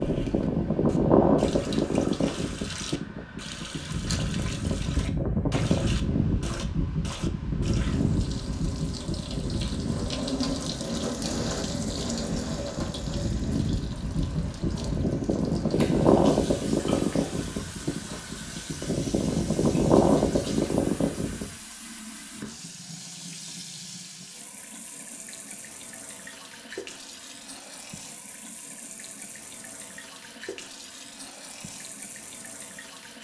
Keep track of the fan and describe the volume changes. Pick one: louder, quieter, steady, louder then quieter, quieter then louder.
quieter then louder.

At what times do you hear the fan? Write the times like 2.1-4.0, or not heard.
0.0-21.6.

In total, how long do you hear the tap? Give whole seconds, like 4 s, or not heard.
33 s.